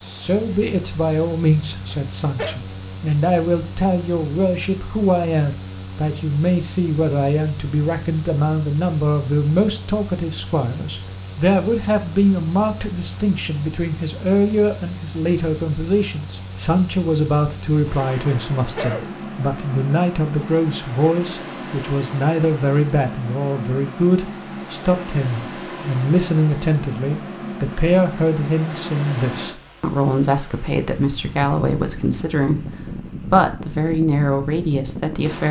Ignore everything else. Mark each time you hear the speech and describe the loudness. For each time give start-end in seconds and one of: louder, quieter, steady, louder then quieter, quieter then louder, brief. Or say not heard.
0.1-35.4 steady.